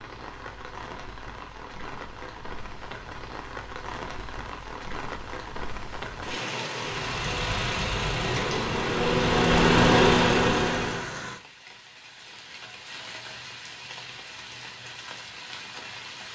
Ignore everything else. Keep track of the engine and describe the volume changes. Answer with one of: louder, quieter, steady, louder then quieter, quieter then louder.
louder.